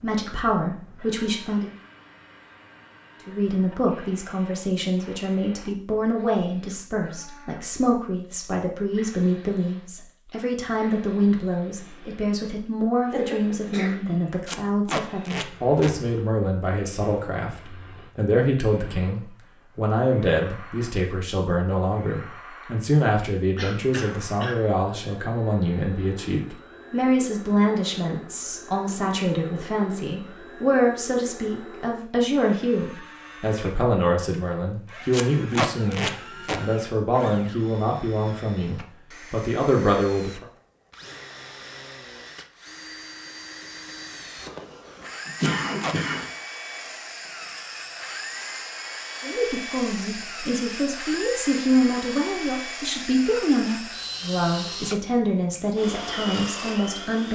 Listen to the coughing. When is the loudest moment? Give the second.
46 s.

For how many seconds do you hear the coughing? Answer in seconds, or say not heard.
4 s.